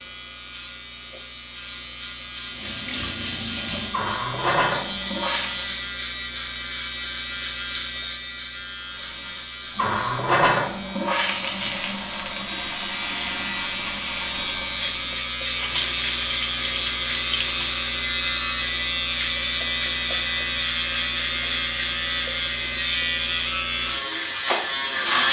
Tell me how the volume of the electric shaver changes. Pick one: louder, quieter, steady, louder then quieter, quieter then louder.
louder.